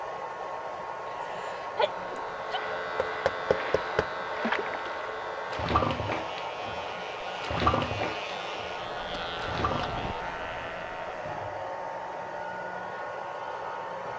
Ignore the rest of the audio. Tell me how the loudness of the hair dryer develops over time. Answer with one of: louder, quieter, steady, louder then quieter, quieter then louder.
steady.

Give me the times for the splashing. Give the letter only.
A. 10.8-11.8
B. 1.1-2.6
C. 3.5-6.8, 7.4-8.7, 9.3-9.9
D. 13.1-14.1
C.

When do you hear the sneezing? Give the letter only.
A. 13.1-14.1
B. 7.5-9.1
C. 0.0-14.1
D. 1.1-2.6
D.